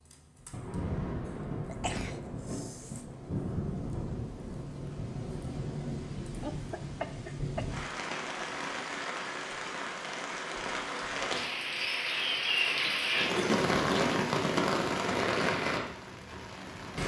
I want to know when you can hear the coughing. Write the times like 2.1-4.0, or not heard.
1.6-3.0, 6.4-8.8, 12.8-14.2.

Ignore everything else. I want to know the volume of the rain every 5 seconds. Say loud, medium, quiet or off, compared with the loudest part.
medium, medium, loud, loud.